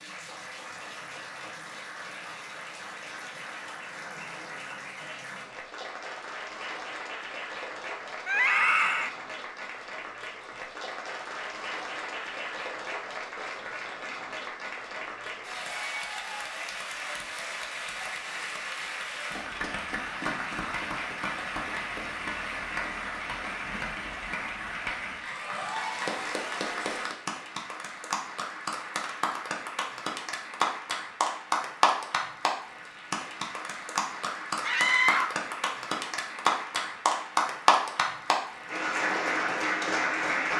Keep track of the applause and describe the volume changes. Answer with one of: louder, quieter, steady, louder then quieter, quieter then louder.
louder.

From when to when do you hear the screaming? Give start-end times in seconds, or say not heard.
8.2-9.1, 34.6-35.4.